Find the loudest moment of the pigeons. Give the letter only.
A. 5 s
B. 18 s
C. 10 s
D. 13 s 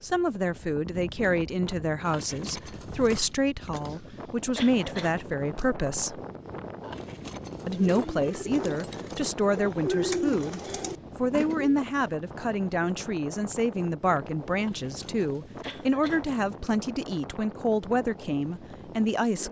C.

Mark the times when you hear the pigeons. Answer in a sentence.
You can hear the pigeons from 7.7 to 11.8 s.